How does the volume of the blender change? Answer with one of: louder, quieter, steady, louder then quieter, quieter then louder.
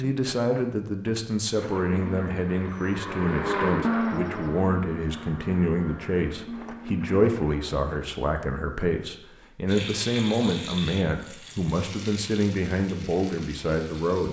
louder then quieter.